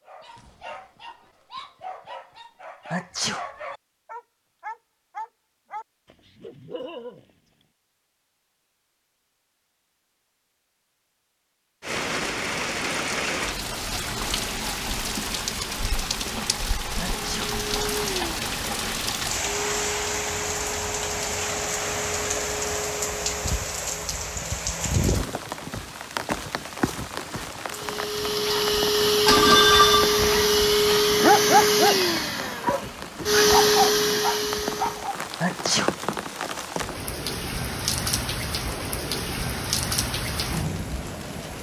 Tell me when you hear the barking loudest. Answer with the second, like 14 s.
31 s.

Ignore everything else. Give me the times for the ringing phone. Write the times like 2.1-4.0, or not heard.
29.2-30.4.